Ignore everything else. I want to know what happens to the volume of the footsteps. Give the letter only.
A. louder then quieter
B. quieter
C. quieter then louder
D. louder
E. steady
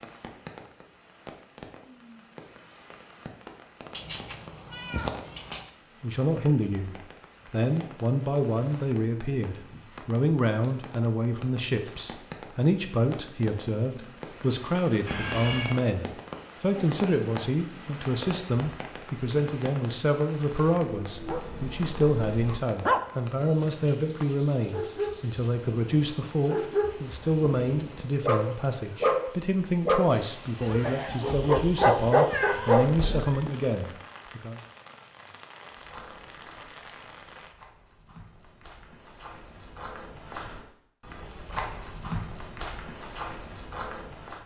D.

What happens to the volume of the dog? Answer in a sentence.
The volume of the dog goes up.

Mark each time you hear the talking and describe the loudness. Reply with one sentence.
You can hear the talking from 6.0 to 34.6 s, at a steady volume.